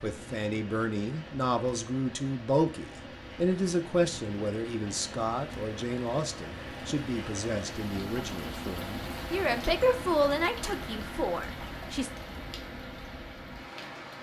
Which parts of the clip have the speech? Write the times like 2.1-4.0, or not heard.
0.0-12.1.